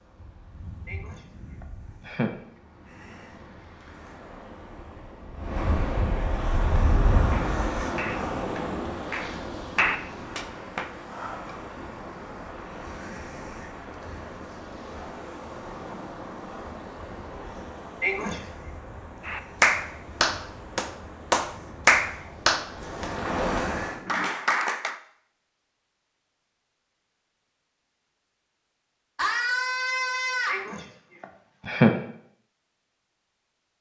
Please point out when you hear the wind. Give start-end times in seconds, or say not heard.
0.0-24.4.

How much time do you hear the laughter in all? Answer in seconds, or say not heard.
4 s.